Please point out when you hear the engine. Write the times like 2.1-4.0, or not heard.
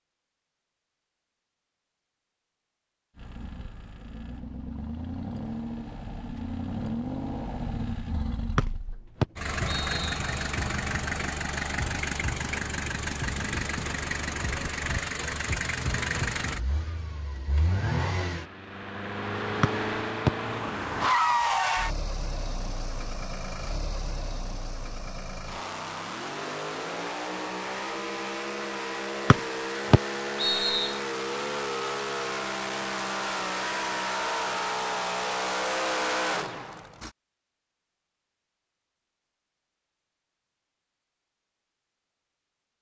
3.1-37.1.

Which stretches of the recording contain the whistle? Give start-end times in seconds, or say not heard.
8.6-10.2, 19.6-20.3, 29.3-30.9.